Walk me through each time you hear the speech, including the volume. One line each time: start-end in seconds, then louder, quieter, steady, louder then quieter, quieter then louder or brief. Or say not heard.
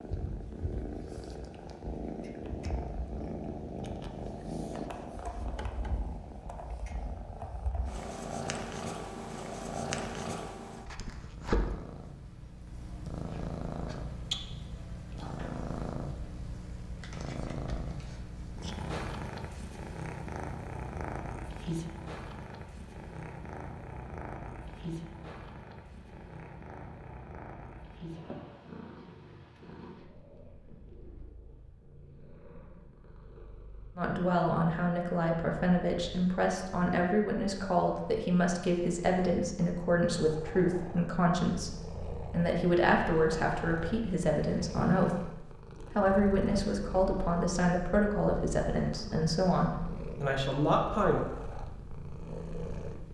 34.0-45.4 steady
46.0-51.2 steady.